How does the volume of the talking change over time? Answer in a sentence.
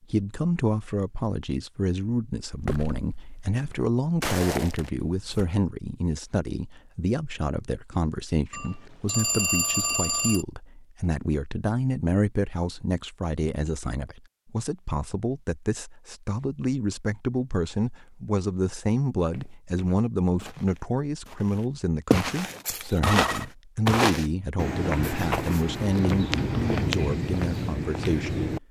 The volume of the talking stays about the same.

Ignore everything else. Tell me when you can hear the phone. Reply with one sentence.
The phone can be heard from 8.5 to 10.4 s and from 22.6 to 23.4 s.